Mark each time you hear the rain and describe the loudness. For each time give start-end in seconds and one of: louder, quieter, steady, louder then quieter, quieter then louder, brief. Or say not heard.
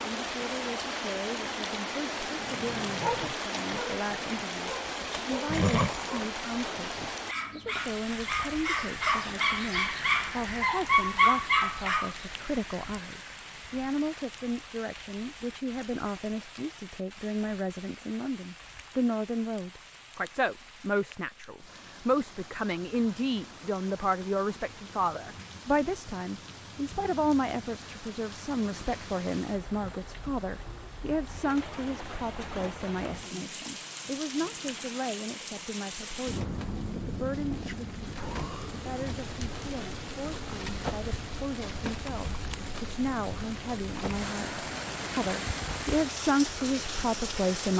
0.0-47.7 quieter then louder.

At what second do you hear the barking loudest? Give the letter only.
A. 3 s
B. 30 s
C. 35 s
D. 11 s
D.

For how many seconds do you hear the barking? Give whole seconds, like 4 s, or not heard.
10 s.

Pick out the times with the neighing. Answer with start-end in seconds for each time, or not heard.
4.8-6.2.